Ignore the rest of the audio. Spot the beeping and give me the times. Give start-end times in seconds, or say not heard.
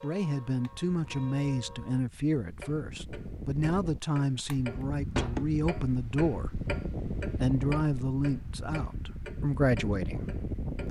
5.2-5.7.